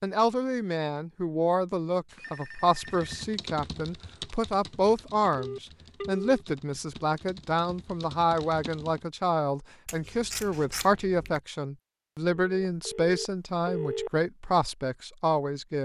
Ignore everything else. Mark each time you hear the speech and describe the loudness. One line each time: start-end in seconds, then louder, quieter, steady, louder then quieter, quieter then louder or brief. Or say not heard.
0.0-15.7 steady.